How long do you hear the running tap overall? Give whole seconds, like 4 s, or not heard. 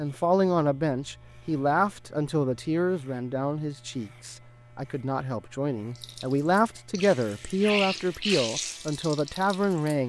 4 s.